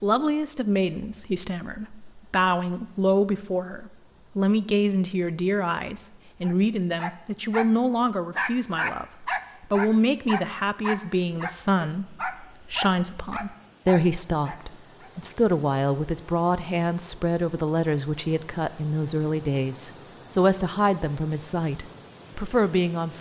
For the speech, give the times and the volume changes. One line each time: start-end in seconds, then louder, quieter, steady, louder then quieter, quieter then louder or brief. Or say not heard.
0.0-23.1 steady.